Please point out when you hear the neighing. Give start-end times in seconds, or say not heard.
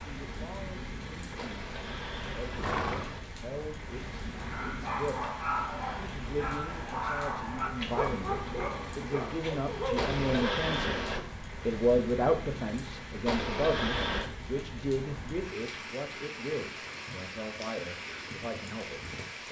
1.4-3.2, 9.9-11.2, 13.2-14.3.